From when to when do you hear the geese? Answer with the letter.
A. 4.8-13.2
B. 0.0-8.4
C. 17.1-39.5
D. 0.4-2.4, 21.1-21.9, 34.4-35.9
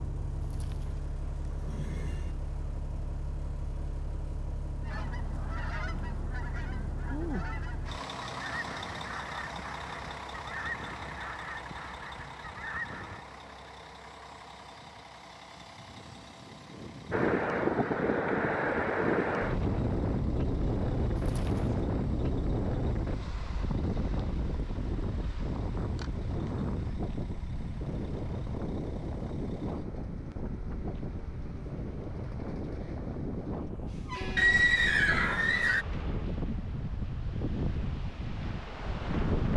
A.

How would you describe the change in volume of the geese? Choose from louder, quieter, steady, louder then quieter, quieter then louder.
steady.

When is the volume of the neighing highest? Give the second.
35 s.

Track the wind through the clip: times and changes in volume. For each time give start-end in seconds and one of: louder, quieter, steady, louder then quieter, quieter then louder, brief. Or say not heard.
17.1-39.5 quieter.